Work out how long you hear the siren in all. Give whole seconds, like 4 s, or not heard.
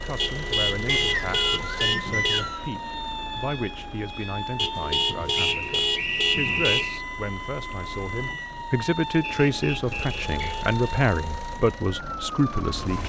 13 s.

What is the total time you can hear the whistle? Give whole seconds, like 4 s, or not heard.
5 s.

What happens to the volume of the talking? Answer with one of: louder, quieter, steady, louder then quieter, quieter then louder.
louder.